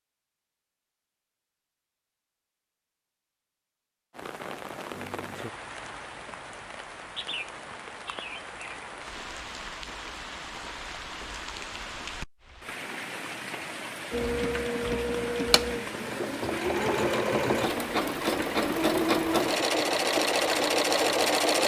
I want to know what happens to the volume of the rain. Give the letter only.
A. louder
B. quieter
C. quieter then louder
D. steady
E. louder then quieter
D.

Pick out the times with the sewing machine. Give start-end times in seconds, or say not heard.
14.1-21.6.